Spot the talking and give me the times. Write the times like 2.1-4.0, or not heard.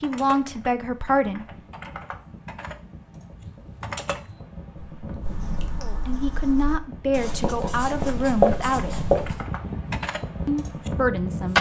0.0-1.4, 5.8-8.9, 10.4-11.5.